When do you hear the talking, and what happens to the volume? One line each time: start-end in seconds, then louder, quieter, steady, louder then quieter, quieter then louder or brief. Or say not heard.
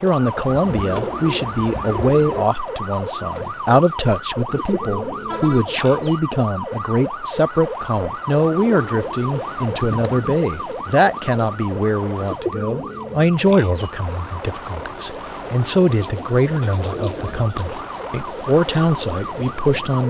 0.0-20.0 steady.